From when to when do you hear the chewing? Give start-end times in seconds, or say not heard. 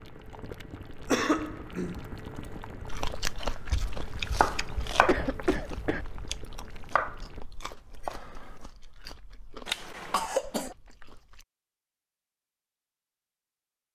2.9-11.4.